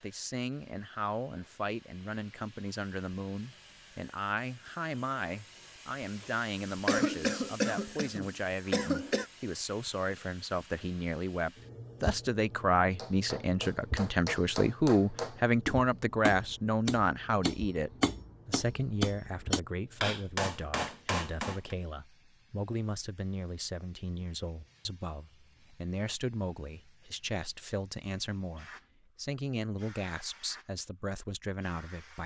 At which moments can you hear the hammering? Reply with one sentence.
You can hear the hammering from 12.9 to 21.8 s.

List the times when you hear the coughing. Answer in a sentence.
The coughing can be heard from 6.8 to 9.2 s.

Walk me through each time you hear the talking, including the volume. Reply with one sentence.
The talking can be heard from 0.0 to 32.2 s, getting louder then quieter.